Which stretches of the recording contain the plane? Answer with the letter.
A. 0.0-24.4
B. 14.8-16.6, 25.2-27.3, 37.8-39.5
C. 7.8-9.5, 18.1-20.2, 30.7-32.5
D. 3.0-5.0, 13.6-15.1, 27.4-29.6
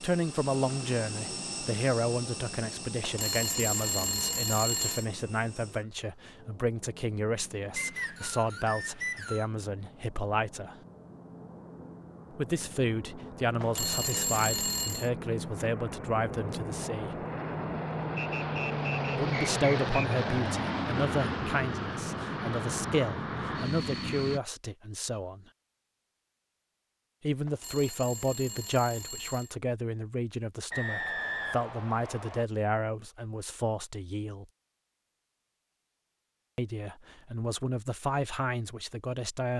A.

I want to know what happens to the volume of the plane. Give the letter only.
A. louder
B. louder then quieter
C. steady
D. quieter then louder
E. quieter
D.